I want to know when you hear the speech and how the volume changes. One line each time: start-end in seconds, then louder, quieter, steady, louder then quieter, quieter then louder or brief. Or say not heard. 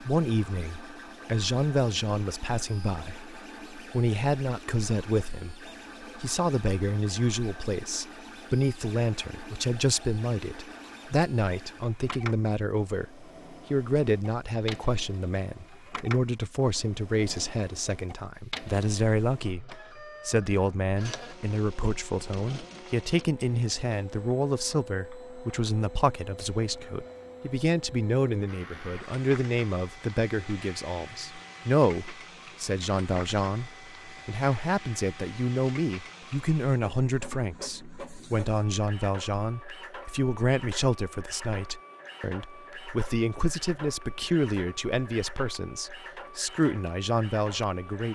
0.0-48.1 steady.